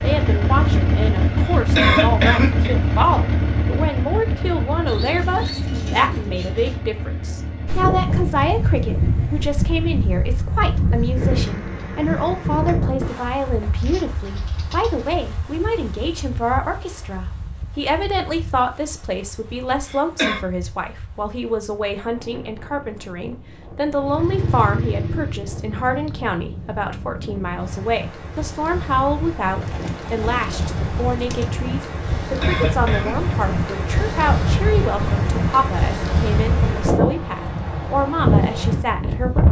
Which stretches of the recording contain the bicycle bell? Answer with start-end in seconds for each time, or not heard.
not heard.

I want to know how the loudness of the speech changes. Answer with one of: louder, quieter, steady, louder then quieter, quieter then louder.
steady.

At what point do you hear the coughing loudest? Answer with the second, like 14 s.
2 s.